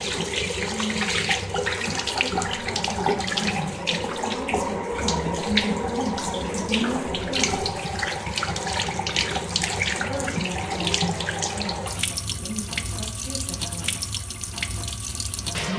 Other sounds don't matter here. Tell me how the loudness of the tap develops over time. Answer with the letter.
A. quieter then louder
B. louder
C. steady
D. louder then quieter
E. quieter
E.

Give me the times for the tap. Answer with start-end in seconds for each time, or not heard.
0.0-15.7.